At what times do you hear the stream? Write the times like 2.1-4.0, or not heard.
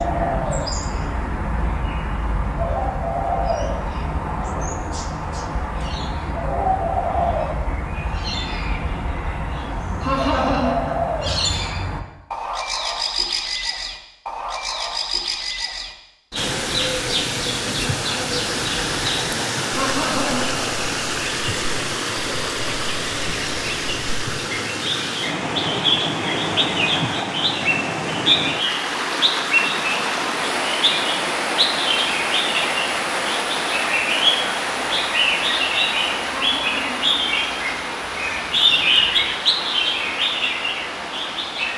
16.4-41.7.